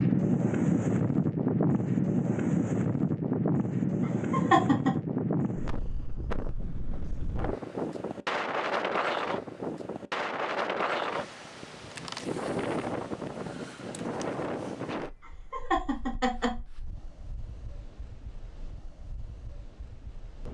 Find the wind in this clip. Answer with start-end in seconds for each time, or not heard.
0.0-20.4.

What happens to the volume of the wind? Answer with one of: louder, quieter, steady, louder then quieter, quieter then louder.
quieter.